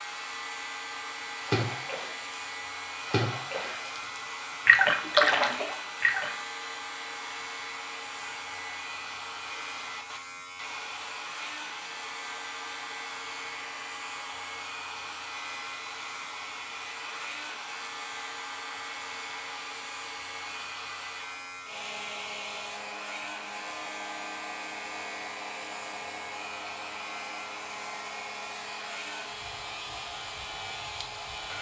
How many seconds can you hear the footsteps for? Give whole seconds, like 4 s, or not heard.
not heard.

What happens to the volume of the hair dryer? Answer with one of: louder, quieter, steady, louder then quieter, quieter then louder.
steady.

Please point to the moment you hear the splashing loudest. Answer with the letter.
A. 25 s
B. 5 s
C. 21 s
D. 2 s
B.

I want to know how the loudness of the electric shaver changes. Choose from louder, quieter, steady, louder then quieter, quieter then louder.
steady.